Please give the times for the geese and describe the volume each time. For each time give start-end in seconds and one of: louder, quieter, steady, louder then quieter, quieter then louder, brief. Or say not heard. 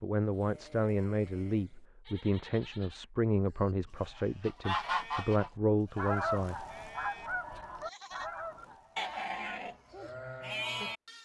4.2-10.1 quieter.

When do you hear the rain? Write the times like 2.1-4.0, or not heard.
not heard.